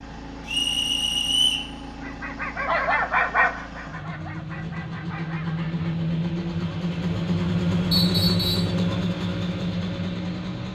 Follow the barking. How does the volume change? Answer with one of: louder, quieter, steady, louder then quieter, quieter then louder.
quieter.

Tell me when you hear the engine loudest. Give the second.
8 s.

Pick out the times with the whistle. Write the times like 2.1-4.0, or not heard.
0.5-1.7, 7.9-8.8.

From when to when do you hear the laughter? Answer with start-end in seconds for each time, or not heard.
not heard.